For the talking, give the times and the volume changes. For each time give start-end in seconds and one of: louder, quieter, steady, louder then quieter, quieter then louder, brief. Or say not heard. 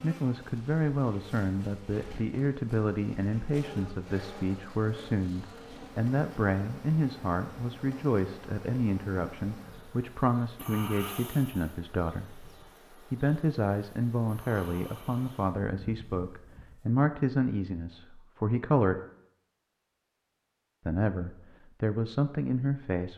0.0-19.0 steady
20.9-23.1 brief.